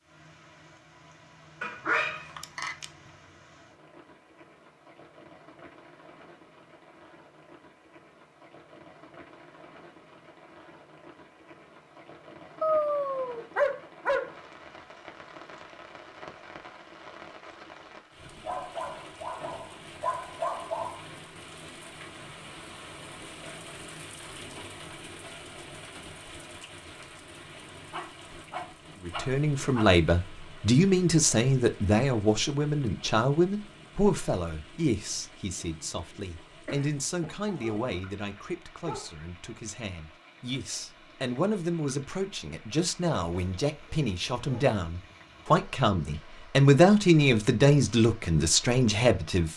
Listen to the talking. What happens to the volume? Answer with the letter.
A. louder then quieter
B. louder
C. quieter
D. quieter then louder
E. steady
D.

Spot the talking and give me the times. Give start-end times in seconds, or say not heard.
29.1-49.5.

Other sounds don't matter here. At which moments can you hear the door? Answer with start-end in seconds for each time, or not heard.
not heard.